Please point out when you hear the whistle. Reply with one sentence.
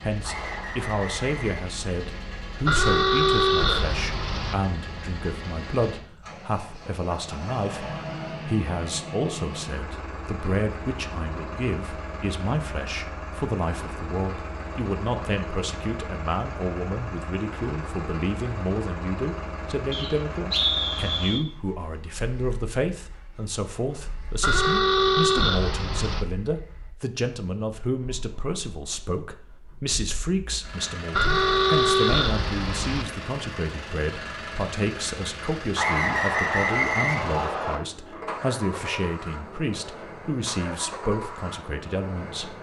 You can hear the whistle from 0.2 to 1.6 s, from 19.9 to 21.4 s and from 35.8 to 37.8 s.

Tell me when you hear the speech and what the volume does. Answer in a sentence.
You can hear the speech from 0.0 to 42.5 s, at a steady volume.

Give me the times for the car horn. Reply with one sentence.
The car horn can be heard from 2.6 to 4.5 s, from 24.4 to 26.2 s and from 31.1 to 33.0 s.